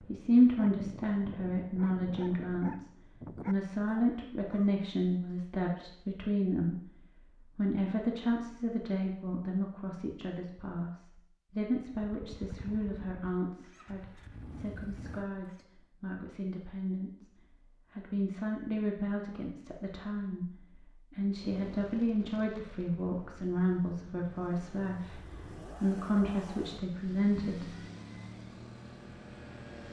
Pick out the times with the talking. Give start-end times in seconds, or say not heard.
0.0-6.8, 7.5-27.8.